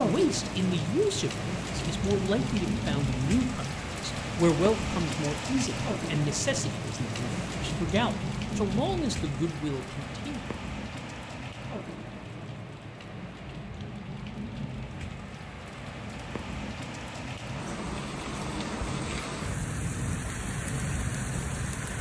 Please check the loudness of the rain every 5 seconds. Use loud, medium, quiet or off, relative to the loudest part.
loud, loud, medium, loud, loud.